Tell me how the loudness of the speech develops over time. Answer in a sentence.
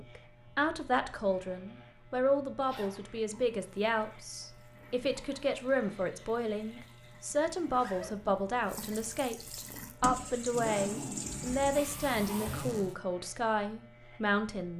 The volume of the speech stays about the same.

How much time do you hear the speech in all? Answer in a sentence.
You can hear the speech for 15 seconds altogether.